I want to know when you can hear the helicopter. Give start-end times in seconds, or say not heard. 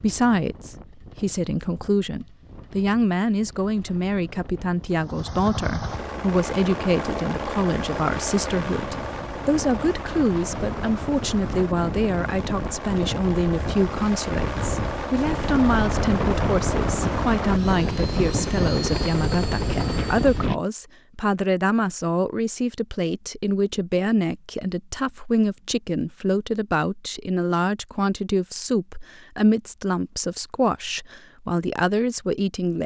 5.0-20.5.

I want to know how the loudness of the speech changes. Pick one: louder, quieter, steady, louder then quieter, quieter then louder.
steady.